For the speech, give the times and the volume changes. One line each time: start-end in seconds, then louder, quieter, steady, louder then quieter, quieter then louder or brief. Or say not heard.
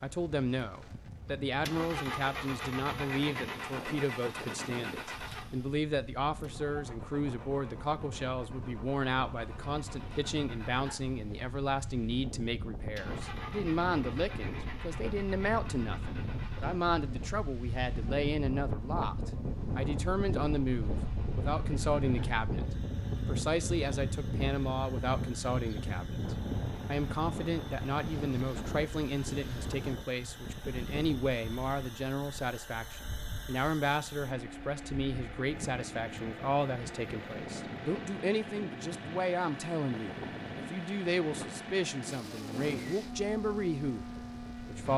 0.0-22.6 steady
23.2-44.9 steady.